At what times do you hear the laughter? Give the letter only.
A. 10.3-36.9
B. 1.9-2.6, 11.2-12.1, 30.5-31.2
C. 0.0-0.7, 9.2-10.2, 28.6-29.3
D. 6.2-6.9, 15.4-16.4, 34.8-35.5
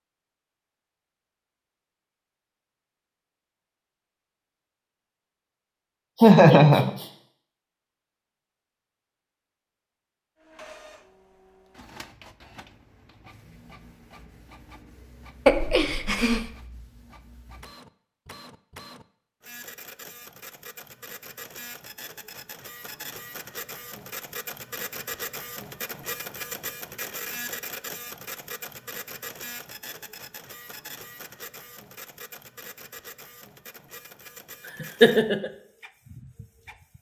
D.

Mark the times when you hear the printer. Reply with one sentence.
You can hear the printer from 10.3 to 36.9 s.